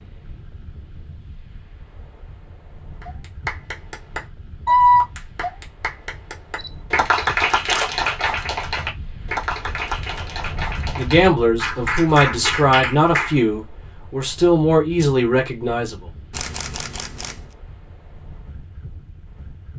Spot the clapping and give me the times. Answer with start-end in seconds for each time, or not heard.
3.0-13.3.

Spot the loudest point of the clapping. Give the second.
5 s.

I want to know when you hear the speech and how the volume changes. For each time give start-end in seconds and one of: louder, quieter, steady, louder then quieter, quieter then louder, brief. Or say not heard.
10.9-16.0 steady.